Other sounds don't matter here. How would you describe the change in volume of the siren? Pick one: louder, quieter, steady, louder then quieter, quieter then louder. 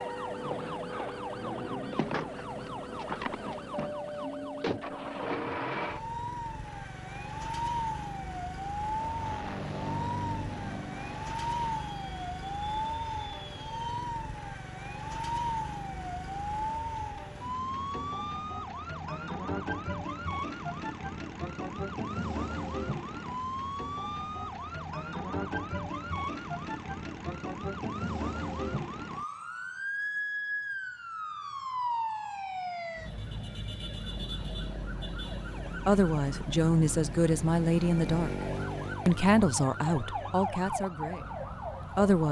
steady.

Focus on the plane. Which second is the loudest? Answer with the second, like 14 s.
10 s.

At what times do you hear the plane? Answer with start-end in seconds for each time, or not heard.
8.8-14.2.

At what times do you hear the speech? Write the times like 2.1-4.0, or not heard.
35.9-38.3, 39.0-42.2.